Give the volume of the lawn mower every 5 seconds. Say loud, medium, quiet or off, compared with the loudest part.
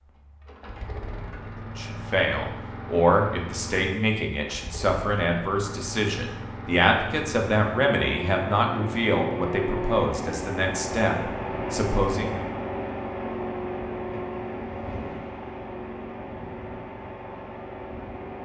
medium, loud, loud, medium.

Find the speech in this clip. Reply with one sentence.
You can hear the speech from 1.8 to 12.4 s.